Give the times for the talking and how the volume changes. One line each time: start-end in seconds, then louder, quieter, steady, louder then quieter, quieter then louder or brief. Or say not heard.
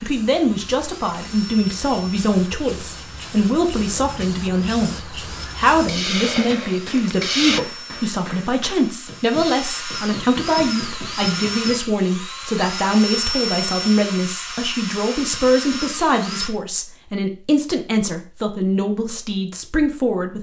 0.0-20.3 steady.